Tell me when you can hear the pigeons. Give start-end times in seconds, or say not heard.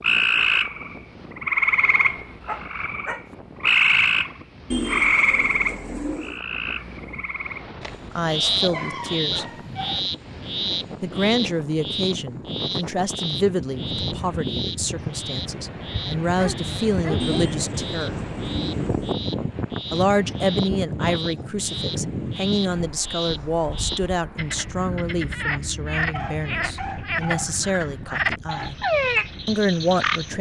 4.7-6.4, 17.1-19.1.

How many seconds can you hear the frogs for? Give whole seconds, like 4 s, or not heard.
30 s.